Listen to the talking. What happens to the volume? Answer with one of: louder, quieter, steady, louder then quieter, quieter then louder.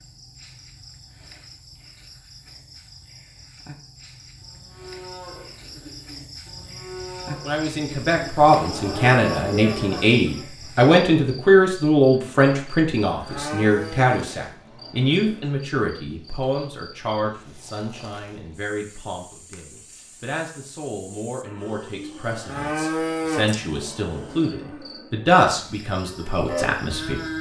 quieter then louder.